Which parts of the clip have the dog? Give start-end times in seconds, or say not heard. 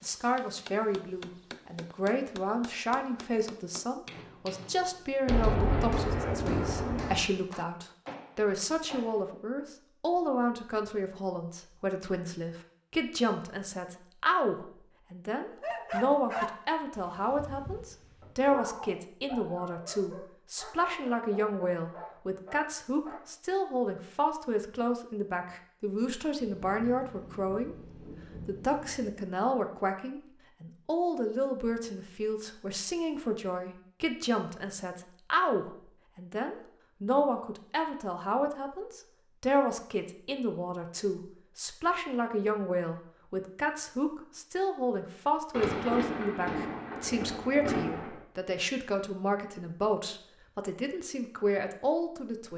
15.6-23.2.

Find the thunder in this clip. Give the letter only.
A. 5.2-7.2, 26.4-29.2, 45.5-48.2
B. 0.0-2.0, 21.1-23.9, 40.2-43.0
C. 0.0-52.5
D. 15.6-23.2
A.